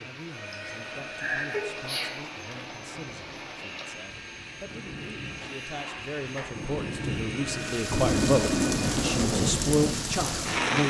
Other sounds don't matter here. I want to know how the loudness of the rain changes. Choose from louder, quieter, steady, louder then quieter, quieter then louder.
louder.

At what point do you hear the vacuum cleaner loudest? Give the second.
6 s.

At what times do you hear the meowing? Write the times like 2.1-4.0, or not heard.
not heard.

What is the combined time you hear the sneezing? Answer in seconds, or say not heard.
2 s.